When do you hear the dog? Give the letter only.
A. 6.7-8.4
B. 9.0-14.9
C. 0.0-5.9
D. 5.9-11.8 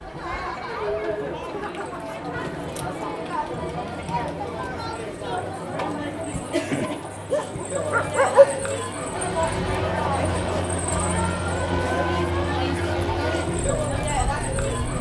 A.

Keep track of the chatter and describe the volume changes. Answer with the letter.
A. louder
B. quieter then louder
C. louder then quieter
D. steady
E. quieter
D.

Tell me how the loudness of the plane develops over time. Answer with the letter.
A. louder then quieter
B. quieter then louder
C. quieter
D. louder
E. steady
E.